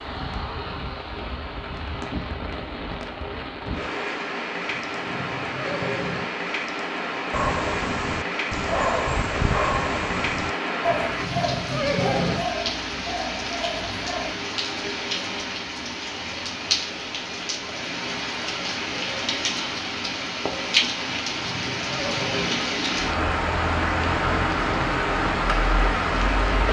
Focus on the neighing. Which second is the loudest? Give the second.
12 s.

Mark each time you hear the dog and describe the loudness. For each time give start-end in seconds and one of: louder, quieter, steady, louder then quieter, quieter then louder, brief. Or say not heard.
7.3-14.3 quieter.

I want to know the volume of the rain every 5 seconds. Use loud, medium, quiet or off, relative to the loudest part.
medium, medium, medium, medium, loud, loud.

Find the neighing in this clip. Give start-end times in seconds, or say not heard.
4.7-6.2, 10.8-12.4, 21.2-22.6.